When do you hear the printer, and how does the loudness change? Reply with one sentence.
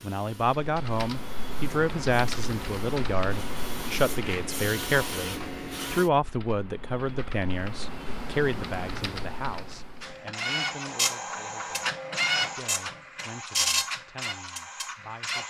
The printer can be heard from 0.0 to 6.1 s, getting louder; and from 10.0 to 15.4 s, getting quieter.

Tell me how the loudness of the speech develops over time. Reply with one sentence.
The volume of the speech goes down.